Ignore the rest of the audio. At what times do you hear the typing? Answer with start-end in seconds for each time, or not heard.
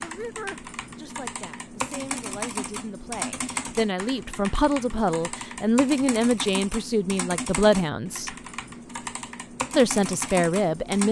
0.0-11.0.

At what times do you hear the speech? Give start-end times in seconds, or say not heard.
0.0-8.3, 9.7-11.0.